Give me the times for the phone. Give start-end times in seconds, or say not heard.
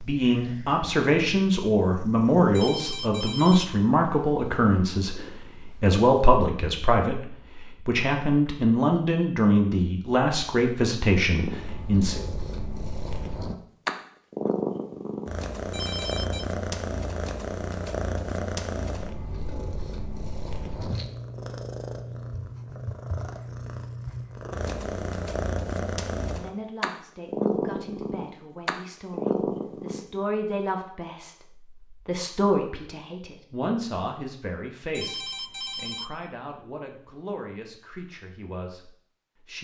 2.5-3.8, 15.7-16.4, 34.9-36.1.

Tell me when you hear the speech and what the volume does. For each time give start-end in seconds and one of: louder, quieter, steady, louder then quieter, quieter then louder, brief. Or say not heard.
0.0-12.2 steady
26.3-39.5 louder then quieter.